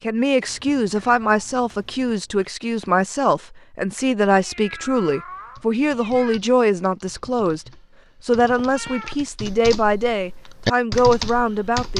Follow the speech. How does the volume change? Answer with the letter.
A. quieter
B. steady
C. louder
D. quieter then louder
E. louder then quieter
B.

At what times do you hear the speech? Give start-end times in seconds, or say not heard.
0.0-11.9.